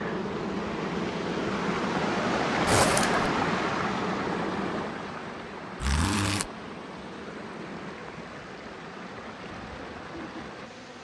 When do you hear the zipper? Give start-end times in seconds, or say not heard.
2.6-3.2, 5.8-6.5.